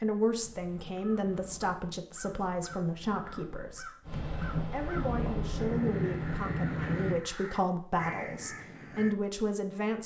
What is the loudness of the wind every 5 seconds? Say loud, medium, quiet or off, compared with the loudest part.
medium, loud.